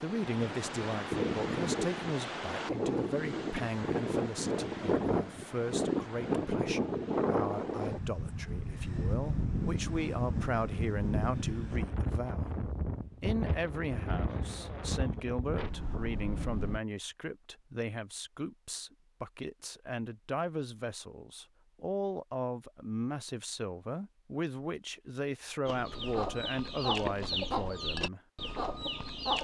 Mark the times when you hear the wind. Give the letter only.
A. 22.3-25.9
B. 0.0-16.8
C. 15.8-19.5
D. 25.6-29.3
B.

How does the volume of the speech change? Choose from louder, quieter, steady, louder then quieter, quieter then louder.
steady.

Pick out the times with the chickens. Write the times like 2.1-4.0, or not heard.
25.6-29.3.